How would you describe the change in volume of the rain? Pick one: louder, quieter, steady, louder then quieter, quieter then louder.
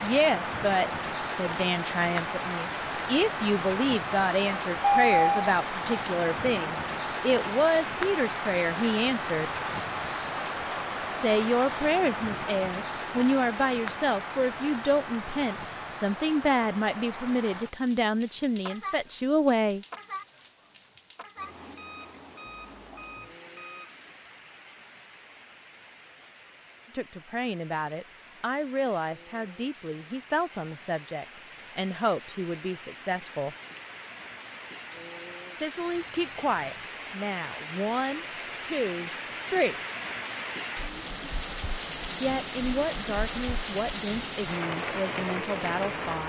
quieter then louder.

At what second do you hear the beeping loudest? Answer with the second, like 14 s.
5 s.